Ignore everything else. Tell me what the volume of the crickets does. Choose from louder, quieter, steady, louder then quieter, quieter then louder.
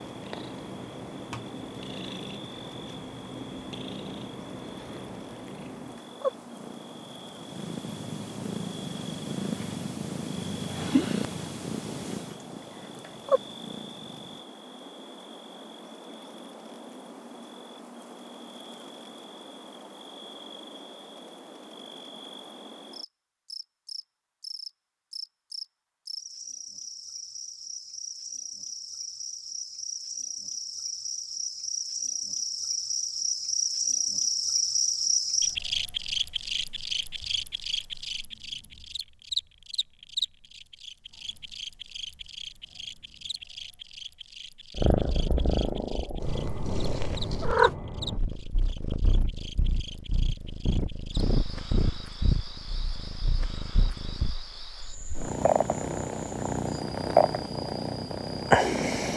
louder then quieter.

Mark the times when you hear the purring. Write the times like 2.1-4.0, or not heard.
0.0-14.4, 44.8-59.1.